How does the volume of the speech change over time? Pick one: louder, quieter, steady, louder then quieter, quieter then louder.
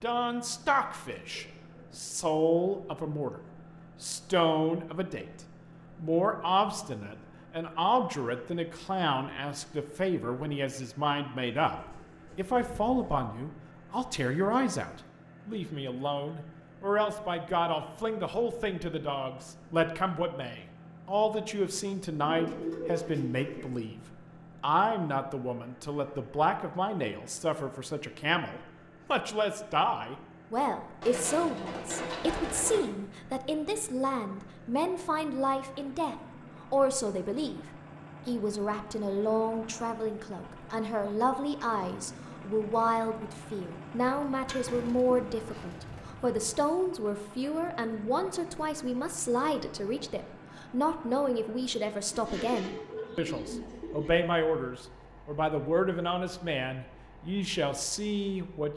steady.